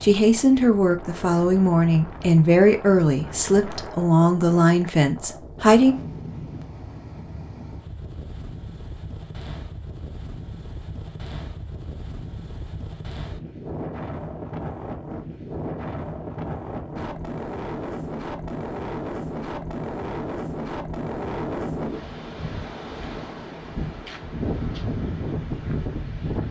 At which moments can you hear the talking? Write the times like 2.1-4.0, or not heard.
0.0-6.0.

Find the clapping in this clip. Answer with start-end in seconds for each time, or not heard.
not heard.